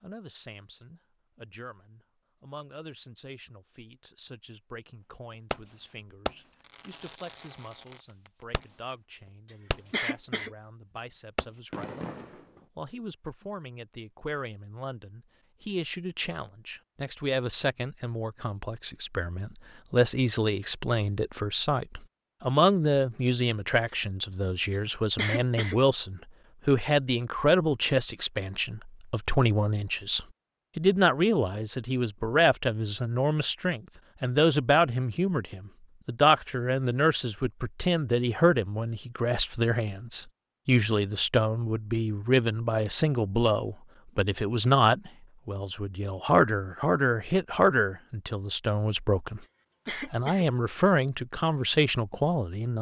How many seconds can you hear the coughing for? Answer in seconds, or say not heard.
2 s.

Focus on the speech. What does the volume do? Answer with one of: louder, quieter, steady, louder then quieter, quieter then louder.
louder.